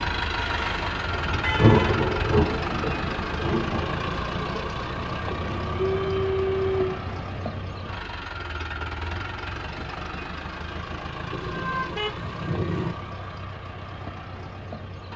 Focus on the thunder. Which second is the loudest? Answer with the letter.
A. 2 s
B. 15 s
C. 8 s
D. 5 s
A.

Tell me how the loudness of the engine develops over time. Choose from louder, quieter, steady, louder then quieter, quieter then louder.
quieter.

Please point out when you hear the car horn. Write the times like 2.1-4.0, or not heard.
0.3-2.0, 5.2-7.2, 11.3-12.9.